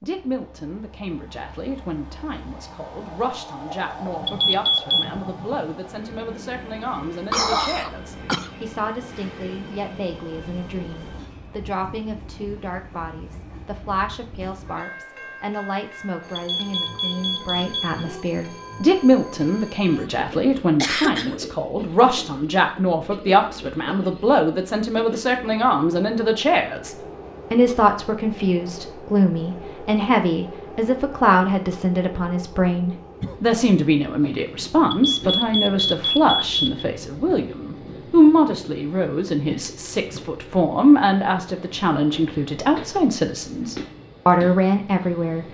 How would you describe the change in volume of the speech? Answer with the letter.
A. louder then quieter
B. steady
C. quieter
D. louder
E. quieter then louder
D.